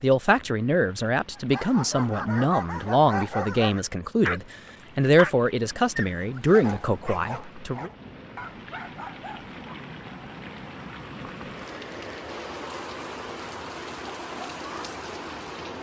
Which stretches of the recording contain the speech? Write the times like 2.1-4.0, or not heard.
0.0-7.9.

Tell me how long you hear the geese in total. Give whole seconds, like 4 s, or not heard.
not heard.